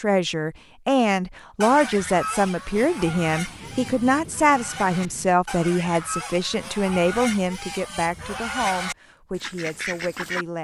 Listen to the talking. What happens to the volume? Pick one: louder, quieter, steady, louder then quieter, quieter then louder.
quieter.